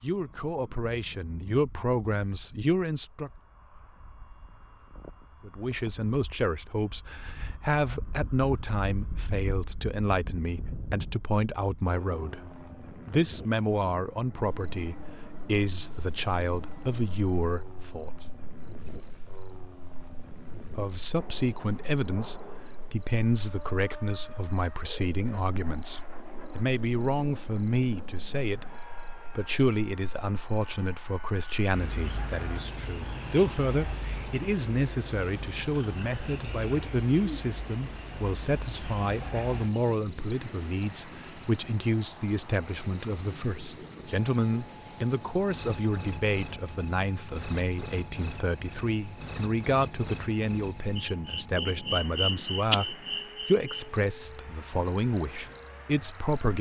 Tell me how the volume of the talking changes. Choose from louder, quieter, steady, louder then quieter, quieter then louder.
steady.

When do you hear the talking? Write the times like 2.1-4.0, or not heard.
0.0-3.3, 5.5-18.1, 20.8-56.5.